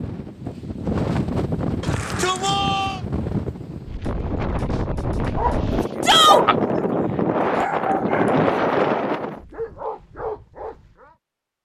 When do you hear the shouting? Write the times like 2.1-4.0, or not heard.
1.8-3.0, 6.0-6.5.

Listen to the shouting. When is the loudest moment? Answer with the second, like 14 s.
6 s.